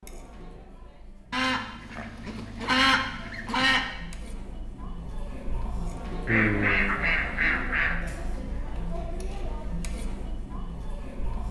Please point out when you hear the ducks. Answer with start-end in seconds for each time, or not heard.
1.3-3.9, 6.2-8.0.